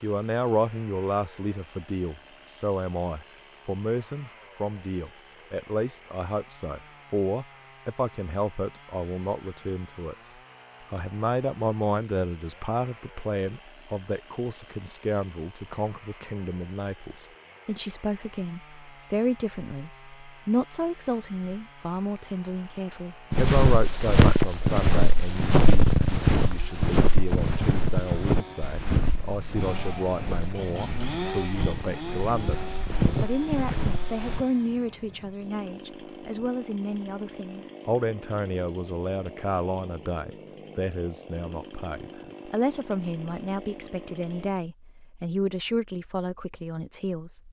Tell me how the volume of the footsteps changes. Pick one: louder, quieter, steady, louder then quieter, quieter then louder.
quieter then louder.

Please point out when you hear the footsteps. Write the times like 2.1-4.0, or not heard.
23.3-34.5.